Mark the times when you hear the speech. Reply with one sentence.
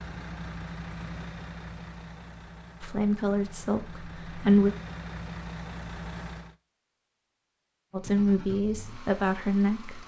The speech can be heard from 2.8 to 4.8 s and from 7.9 to 10.0 s.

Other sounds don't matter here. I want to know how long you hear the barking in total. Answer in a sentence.
You can't hear the barking here.